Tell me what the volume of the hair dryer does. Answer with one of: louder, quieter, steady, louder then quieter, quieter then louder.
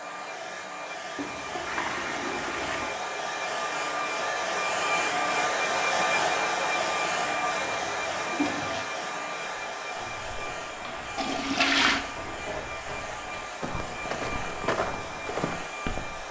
louder then quieter.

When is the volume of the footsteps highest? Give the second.
15 s.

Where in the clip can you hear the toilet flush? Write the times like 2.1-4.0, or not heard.
1.1-3.0, 7.5-8.8, 11.2-12.1.